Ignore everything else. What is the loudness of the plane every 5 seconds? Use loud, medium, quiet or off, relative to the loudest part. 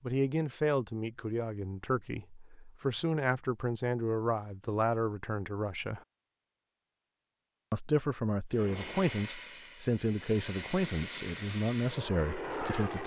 off, loud, loud.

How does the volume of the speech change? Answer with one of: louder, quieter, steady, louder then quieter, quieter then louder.
steady.